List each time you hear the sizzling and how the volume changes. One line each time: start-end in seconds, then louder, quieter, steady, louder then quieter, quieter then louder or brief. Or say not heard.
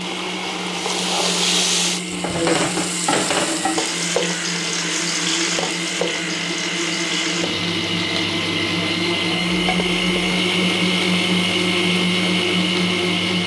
0.0-13.4 quieter.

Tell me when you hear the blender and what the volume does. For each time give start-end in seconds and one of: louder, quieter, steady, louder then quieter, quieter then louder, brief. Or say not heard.
0.0-13.4 louder.